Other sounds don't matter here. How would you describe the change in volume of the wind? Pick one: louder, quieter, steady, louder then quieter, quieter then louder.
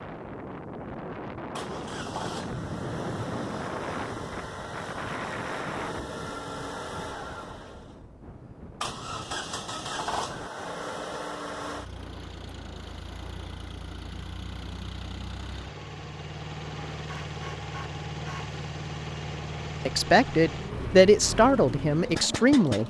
quieter.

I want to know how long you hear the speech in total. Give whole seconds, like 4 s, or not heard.
3 s.